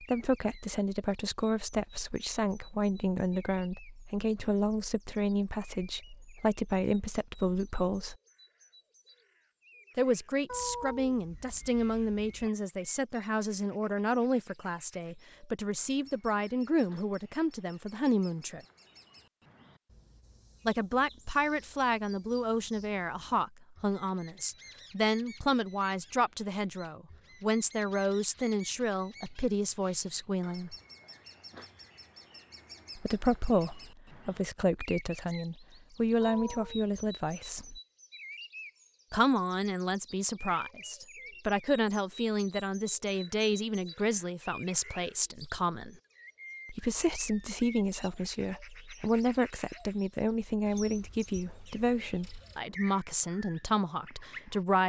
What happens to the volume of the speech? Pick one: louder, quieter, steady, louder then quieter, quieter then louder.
steady.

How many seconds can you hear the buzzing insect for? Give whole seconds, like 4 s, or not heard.
not heard.